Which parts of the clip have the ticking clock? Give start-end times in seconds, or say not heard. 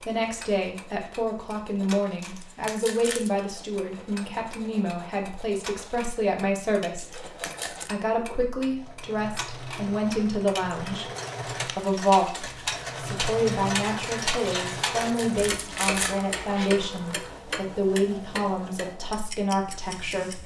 0.0-20.4.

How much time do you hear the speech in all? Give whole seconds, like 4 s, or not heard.
20 s.